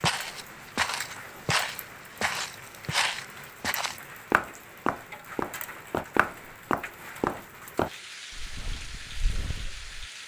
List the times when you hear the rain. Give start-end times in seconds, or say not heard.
0.0-10.2.